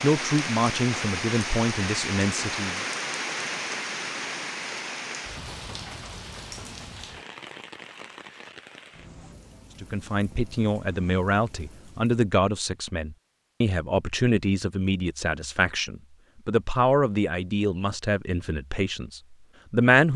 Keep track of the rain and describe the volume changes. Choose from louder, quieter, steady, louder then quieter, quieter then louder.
quieter.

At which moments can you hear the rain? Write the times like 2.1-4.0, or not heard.
0.0-12.2.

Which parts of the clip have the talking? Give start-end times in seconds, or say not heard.
0.0-2.8, 9.8-20.1.